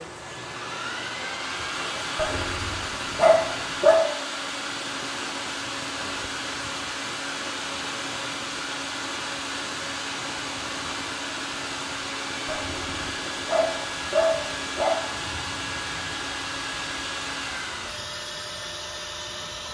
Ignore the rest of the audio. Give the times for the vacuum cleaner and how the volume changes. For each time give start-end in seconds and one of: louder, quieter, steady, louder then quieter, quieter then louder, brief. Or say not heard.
0.0-19.7 steady.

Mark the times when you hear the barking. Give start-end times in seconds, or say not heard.
2.1-4.0, 12.4-15.1.